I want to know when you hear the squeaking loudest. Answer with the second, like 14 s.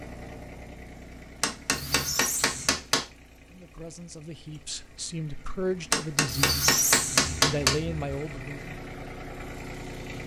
7 s.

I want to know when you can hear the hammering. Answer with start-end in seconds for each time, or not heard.
1.4-3.0, 5.9-7.8.